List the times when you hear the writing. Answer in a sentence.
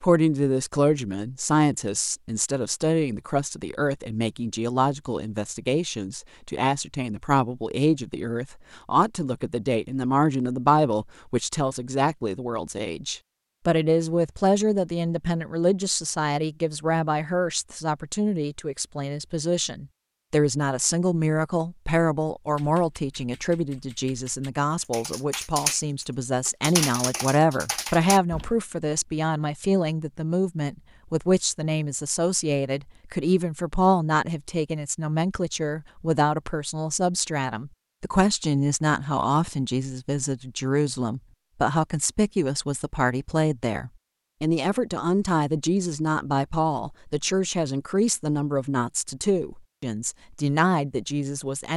You can't hear the writing here.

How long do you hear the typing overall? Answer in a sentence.
The typing can be heard for 6 seconds in total.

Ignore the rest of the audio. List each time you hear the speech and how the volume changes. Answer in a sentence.
You can hear the speech from 0.0 to 51.7 s, at a steady volume.